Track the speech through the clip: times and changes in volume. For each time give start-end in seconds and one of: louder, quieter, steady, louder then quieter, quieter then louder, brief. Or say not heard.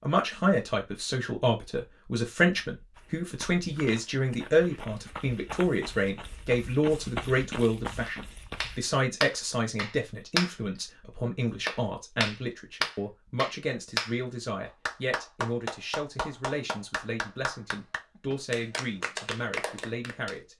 0.0-20.5 quieter.